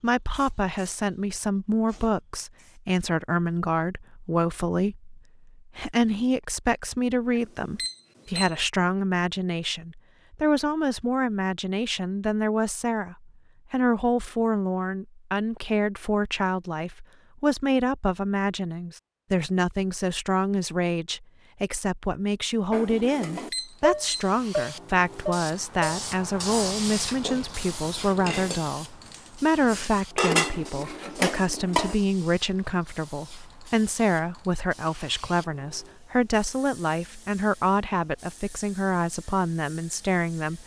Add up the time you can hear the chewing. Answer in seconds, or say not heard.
not heard.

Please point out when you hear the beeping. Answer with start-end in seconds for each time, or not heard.
7.3-8.6, 23.3-24.3.